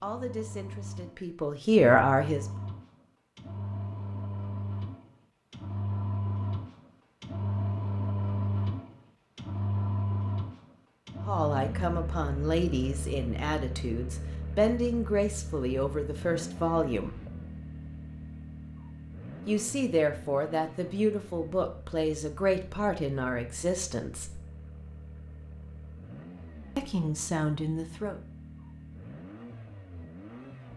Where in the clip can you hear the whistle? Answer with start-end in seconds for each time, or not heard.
not heard.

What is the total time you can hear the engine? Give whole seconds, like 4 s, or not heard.
31 s.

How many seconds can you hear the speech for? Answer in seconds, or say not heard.
15 s.